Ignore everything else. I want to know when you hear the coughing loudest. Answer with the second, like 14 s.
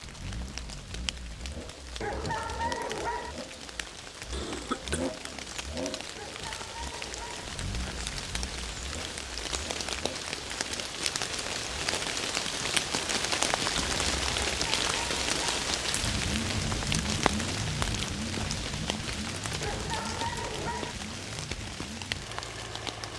5 s.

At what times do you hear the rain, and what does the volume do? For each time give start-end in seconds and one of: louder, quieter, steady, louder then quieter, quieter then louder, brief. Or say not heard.
0.0-23.1 louder then quieter.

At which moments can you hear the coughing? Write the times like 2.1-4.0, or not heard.
4.3-5.2, 13.8-14.6.